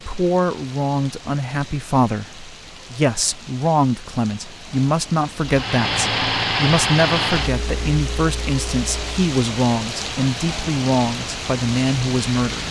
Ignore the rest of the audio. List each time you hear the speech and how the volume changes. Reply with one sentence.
You can hear the speech from 0.1 to 12.6 s, at a steady volume.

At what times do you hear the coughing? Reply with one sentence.
The coughing can't be heard in this clip.